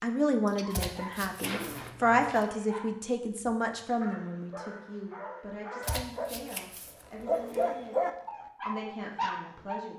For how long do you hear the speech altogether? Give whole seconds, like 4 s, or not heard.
9 s.